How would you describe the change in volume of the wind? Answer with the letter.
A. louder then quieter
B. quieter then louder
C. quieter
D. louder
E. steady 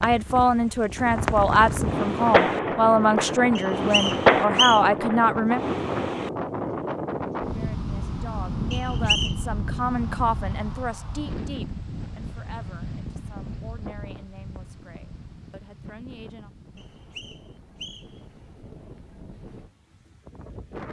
C.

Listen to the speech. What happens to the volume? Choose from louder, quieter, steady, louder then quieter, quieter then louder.
quieter.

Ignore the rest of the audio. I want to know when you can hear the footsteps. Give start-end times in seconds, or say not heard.
not heard.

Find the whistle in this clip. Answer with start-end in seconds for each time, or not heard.
3.5-4.8, 8.7-9.3, 16.8-18.2.